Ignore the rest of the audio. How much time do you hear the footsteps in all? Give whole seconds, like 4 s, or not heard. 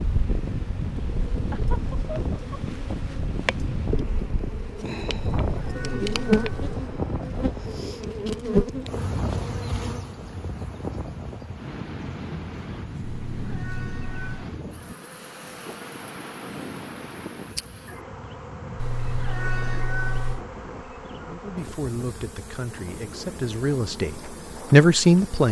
not heard.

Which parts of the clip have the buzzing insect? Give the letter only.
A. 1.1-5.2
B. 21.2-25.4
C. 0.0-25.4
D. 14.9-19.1
C.